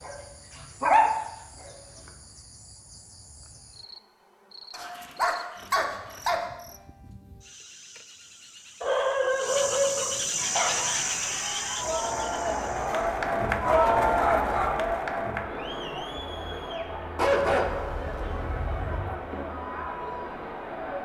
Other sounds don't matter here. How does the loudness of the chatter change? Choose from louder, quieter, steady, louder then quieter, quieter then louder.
louder then quieter.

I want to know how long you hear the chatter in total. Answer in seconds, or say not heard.
11 s.